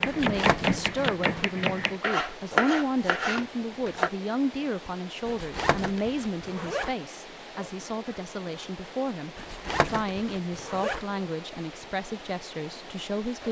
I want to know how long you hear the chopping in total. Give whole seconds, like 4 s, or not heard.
4 s.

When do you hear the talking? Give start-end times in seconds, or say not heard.
0.0-13.4.